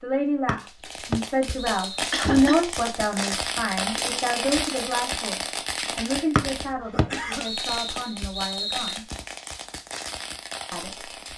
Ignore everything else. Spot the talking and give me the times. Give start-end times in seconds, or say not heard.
0.0-9.1, 10.7-11.2.